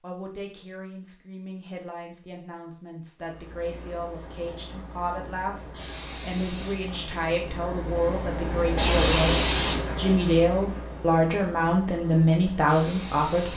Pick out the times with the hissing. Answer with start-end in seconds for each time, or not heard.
3.2-13.5.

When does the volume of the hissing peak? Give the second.
9 s.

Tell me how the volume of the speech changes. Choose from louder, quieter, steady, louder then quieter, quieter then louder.
louder.